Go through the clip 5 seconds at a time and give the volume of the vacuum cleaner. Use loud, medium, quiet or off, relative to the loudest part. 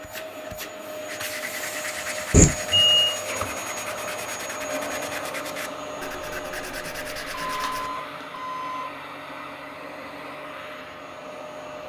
loud, loud, medium.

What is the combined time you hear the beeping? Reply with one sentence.
The beeping can be heard for 2 seconds in total.